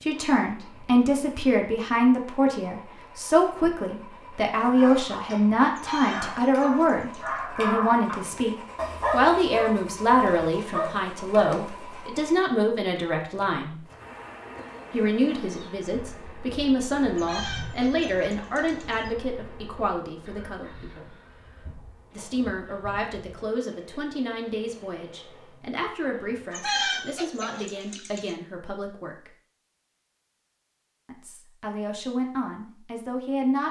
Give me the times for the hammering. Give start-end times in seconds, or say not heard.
not heard.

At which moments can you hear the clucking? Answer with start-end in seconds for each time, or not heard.
5.7-7.4, 17.1-19.1, 26.5-28.4.